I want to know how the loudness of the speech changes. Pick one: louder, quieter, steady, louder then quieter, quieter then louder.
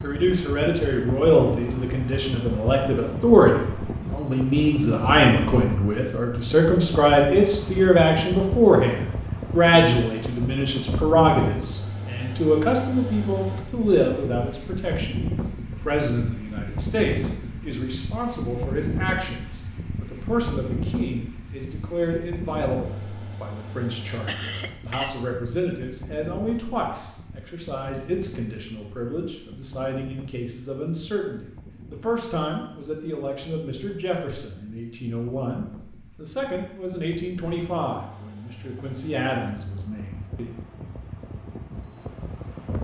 quieter.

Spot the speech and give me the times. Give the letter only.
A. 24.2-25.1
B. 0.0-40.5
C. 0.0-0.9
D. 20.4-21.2
B.